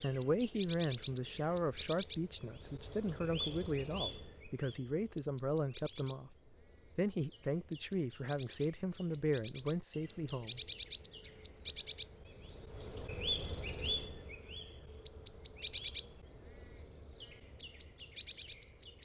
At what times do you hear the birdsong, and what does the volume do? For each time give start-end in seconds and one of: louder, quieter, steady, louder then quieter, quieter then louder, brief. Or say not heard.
0.0-19.0 quieter then louder.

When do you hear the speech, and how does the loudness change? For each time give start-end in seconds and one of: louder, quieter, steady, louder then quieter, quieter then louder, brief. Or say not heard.
0.0-10.6 steady.